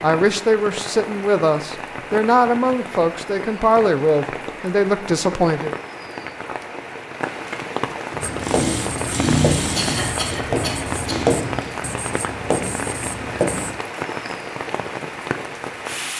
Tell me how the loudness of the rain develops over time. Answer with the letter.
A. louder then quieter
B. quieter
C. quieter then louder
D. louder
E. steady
E.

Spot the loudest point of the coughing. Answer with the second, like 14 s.
10 s.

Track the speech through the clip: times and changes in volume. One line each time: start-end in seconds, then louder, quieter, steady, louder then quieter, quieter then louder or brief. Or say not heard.
0.0-5.8 steady.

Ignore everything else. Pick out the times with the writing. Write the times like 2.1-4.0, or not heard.
8.2-13.8.